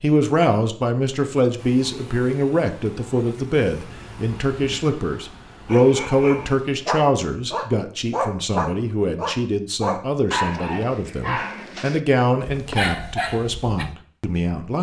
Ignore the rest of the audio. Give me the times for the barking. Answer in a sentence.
You can hear the barking from 5.7 to 13.9 s.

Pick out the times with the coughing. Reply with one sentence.
The coughing can't be heard in this clip.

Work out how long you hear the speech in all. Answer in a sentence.
You can hear the speech for 15 seconds altogether.